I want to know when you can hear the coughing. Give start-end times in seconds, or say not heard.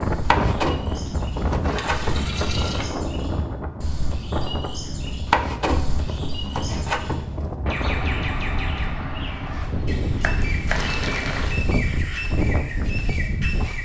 not heard.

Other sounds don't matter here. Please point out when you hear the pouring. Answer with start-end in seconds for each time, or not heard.
1.6-2.9, 10.7-11.6.